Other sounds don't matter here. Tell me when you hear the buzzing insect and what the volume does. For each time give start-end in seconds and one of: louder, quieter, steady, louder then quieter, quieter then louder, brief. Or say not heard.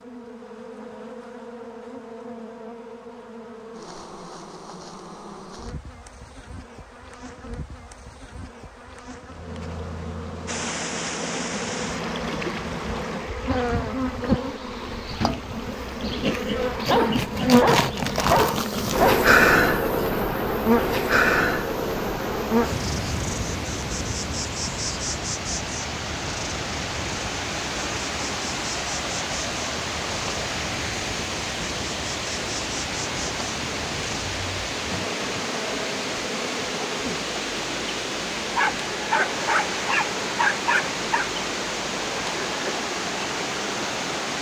0.0-44.3 louder then quieter.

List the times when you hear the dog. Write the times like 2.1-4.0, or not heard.
16.7-19.3, 38.5-41.2.